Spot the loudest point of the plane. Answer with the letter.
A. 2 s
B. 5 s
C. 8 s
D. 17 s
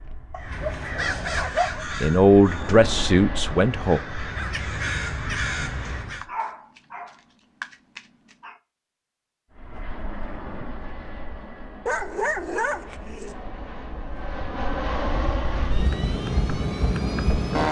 D.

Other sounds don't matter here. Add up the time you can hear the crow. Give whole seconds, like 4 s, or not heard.
6 s.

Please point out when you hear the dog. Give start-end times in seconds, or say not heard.
0.3-1.9, 6.2-8.6, 11.8-13.3.